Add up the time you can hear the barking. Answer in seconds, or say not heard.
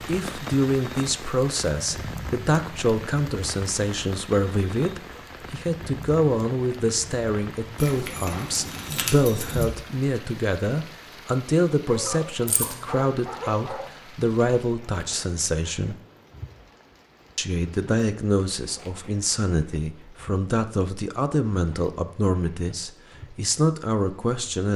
2 s.